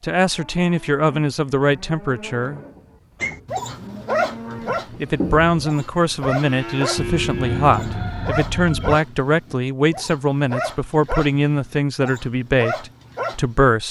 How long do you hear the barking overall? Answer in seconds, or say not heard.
10 s.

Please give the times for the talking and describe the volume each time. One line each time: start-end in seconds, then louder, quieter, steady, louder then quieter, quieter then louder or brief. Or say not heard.
0.0-2.6 brief
4.5-13.8 steady.